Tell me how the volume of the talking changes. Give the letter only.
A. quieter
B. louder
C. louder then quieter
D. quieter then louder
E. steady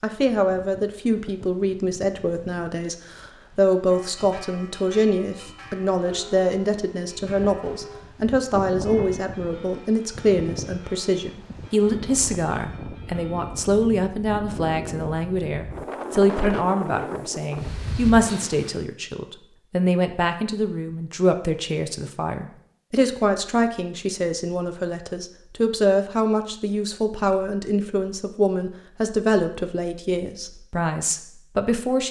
E.